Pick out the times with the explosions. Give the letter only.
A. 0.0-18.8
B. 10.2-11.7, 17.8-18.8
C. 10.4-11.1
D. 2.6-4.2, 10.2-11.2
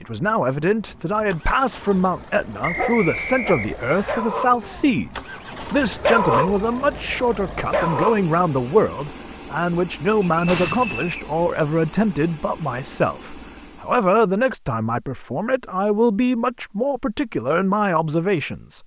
C.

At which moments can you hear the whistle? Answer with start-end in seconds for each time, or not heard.
2.6-4.2, 10.2-11.2.